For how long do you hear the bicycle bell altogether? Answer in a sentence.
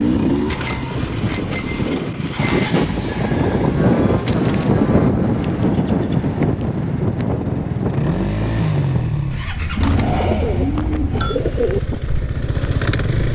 You can hear the bicycle bell for 4 seconds altogether.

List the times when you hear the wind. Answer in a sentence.
The wind can be heard from 0.0 to 13.2 s.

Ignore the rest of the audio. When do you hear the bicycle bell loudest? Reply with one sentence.
The volume of the bicycle bell peaks at 11 seconds.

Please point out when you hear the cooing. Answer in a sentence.
You can hear the cooing from 3.0 to 4.8 s and from 9.8 to 11.8 s.